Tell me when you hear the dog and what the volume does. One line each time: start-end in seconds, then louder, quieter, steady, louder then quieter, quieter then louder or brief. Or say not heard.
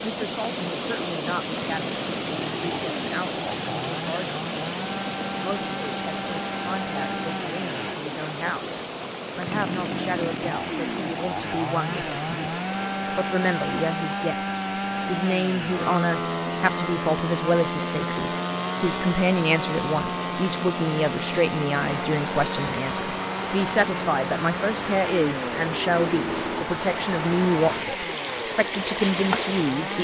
not heard.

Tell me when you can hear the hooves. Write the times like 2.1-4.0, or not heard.
not heard.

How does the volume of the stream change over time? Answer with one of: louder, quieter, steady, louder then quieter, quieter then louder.
quieter then louder.